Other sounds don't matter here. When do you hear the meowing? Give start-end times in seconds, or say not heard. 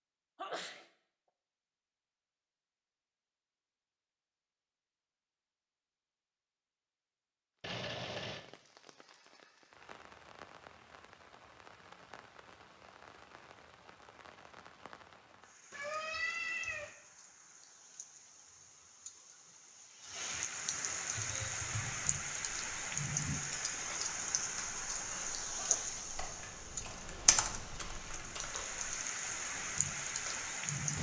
7.6-8.4, 15.7-16.9.